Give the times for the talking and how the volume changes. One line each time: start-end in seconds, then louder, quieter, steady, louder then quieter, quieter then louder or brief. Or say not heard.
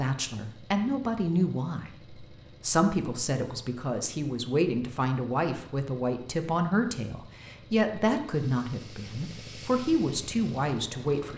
0.0-11.3 steady.